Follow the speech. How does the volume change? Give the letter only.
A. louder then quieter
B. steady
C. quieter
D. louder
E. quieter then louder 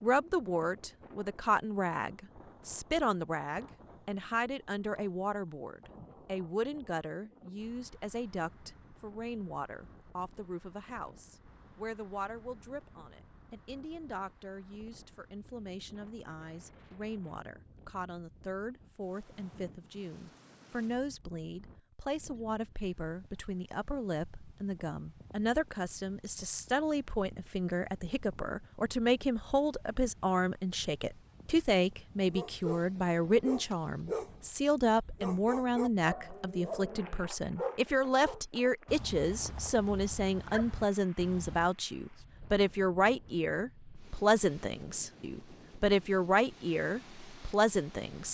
E.